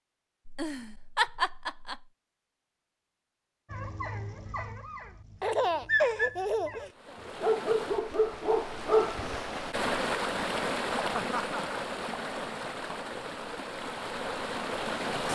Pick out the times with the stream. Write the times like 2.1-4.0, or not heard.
6.9-15.3.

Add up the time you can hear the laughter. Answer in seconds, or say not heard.
4 s.